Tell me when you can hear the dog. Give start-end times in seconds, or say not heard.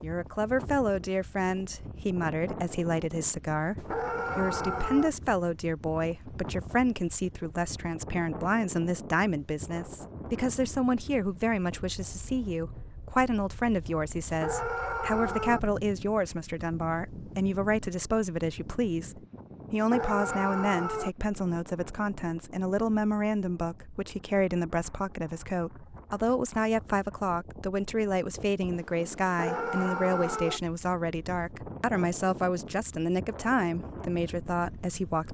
3.8-5.1, 14.3-15.6, 19.8-21.1, 29.2-30.6.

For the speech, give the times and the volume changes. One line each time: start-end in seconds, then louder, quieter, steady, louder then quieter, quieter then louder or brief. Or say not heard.
0.0-35.2 steady.